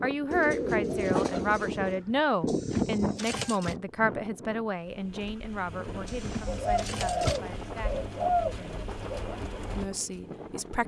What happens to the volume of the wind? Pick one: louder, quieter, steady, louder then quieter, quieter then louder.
quieter.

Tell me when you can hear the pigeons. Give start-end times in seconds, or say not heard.
0.3-2.0, 6.4-9.2.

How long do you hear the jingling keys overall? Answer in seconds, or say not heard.
3 s.